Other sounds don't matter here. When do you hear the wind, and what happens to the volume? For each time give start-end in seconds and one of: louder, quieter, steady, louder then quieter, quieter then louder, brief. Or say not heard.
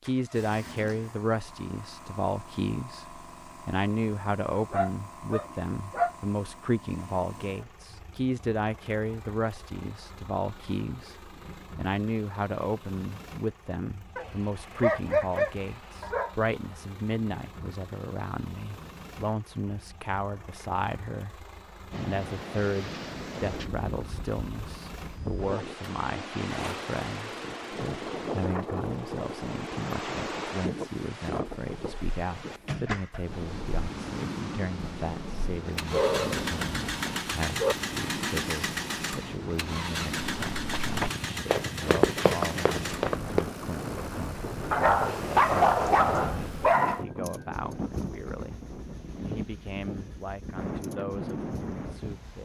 21.9-52.3 steady.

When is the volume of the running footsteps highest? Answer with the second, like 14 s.
42 s.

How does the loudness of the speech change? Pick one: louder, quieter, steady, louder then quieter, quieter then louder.
quieter.